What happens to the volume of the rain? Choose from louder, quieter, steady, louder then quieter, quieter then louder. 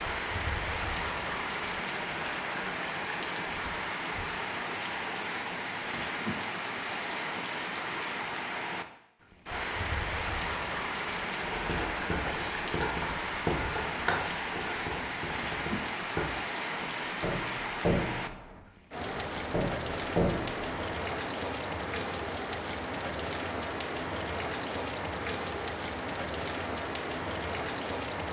steady.